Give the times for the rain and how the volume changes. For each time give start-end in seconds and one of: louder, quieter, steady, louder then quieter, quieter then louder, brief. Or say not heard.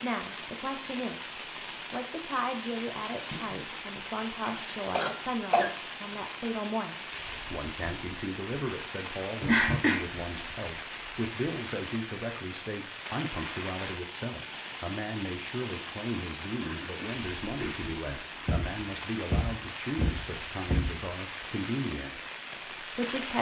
0.0-23.3 steady.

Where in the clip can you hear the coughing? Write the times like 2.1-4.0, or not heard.
5.0-5.7, 9.4-10.1, 16.6-17.9.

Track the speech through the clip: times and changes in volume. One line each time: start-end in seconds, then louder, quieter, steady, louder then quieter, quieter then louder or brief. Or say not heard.
0.0-23.3 steady.